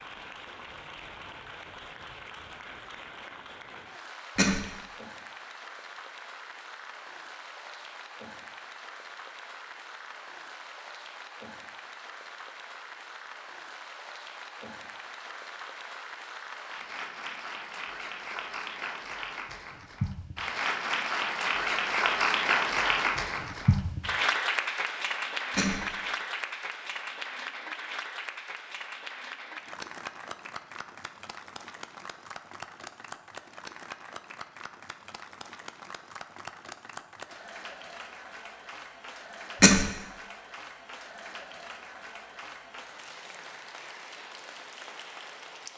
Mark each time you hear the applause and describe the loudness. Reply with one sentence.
The applause can be heard from 0.0 to 45.7 s, getting louder then quieter.